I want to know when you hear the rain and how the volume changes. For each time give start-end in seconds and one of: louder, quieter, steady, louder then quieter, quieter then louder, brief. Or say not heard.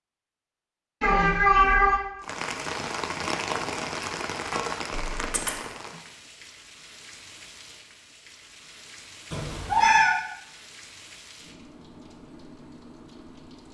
2.2-13.6 quieter.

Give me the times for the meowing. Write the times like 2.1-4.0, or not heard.
1.0-2.0, 4.9-5.6, 9.3-10.2.